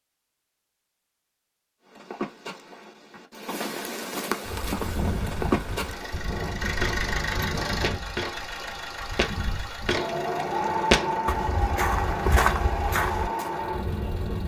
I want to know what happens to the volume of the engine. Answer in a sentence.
The loudness of the engine goes down.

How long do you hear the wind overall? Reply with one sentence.
You can hear the wind for 10 seconds altogether.